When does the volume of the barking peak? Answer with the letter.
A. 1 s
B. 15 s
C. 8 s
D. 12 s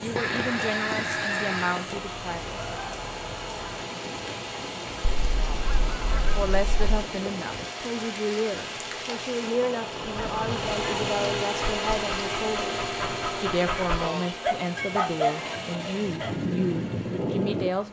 B.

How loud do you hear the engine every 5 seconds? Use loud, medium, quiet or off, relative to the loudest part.
medium, medium, loud, loud.